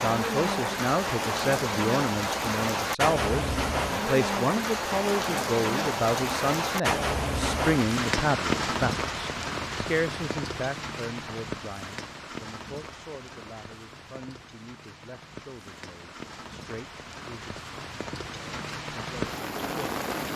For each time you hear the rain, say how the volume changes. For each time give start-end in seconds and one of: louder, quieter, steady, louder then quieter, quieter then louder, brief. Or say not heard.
0.0-20.3 quieter then louder.